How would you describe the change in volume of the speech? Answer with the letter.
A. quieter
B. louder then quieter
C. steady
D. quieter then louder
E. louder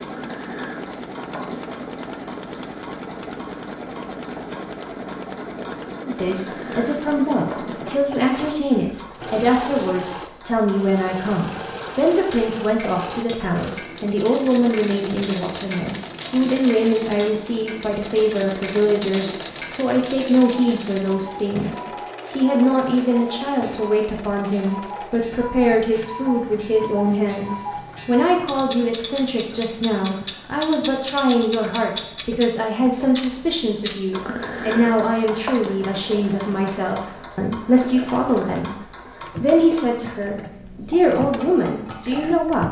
C.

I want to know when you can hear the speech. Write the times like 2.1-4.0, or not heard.
6.0-42.6.